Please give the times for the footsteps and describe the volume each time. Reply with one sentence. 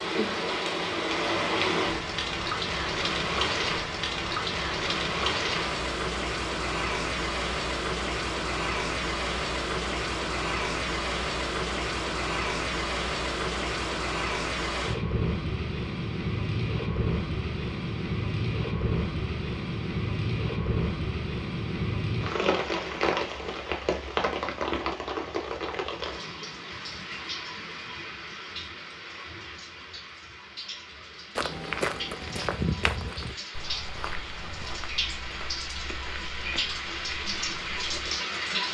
You can hear the footsteps from 31.4 to 38.2 s, getting quieter.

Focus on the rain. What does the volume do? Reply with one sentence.
The loudness of the rain goes down.